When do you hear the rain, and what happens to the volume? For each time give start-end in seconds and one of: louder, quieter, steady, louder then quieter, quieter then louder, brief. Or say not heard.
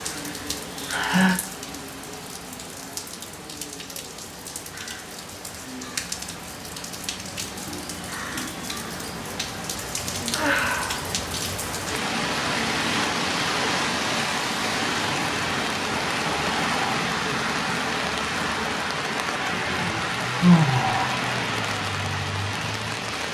0.0-23.2 louder.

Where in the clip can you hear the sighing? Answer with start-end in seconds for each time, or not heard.
0.2-1.4, 10.3-11.1, 19.5-21.2.